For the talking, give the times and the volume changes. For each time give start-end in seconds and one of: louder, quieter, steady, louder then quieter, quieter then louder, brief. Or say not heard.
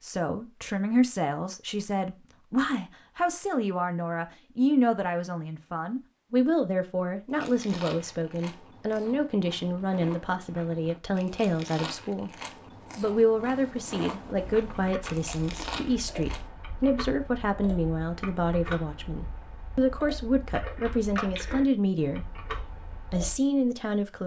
0.0-12.3 steady
12.9-24.2 steady.